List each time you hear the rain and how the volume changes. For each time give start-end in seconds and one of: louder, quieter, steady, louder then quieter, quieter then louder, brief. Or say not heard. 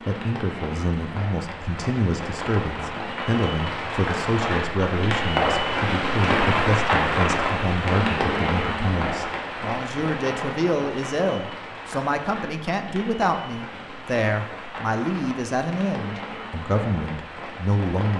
0.0-18.1 louder then quieter.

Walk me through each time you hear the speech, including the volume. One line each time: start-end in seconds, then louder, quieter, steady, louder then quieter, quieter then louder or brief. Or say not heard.
0.1-18.1 steady.